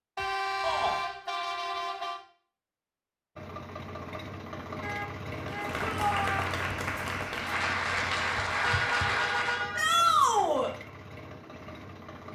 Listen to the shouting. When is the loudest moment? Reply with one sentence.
The loudest moment of the shouting is at 10 seconds.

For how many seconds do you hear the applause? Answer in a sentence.
The applause can be heard for 4 seconds in total.